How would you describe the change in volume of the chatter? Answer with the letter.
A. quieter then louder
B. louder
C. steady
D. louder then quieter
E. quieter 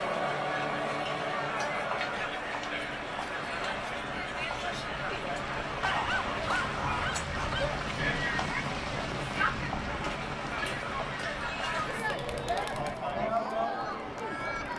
C.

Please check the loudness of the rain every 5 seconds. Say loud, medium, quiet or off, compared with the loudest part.
medium, loud, loud.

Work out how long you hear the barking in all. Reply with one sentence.
The barking can be heard for 2 seconds in total.